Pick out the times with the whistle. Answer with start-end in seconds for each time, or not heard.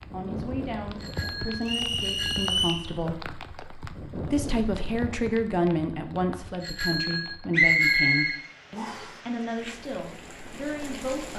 1.6-2.9, 7.5-9.1.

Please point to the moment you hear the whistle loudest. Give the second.
8 s.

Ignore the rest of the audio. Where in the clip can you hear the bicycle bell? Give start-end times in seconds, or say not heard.
0.9-2.5, 6.6-8.4.